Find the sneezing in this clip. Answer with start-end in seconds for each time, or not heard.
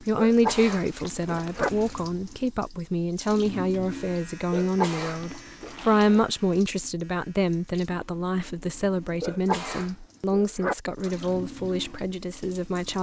0.1-1.7, 4.5-5.7, 9.2-10.8.